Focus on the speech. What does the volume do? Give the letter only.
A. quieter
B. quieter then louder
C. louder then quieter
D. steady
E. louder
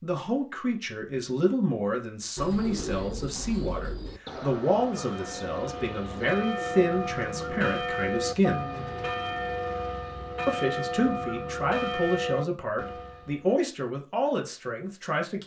D.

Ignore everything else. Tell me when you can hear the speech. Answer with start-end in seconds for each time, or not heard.
0.0-8.7, 10.4-15.4.